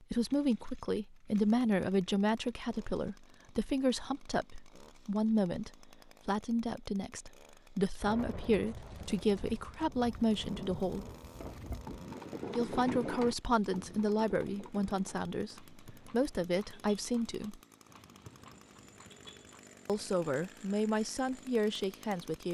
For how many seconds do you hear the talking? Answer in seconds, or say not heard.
19 s.